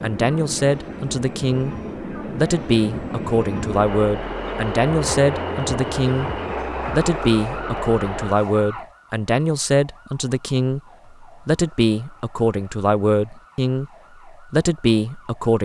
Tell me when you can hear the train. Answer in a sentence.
You can hear the train from 0.0 to 8.3 s.